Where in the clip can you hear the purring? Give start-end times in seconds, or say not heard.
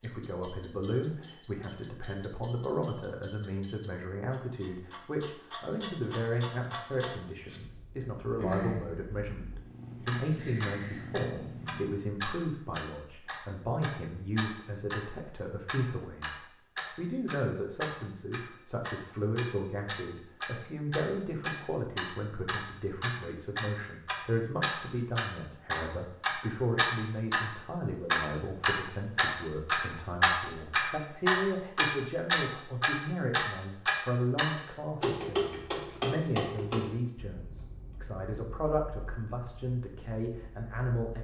8.2-11.9.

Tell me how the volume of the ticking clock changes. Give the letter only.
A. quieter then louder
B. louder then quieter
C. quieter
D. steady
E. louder
B.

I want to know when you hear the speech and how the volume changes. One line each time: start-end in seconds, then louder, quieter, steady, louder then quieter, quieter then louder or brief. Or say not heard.
0.0-41.1 steady.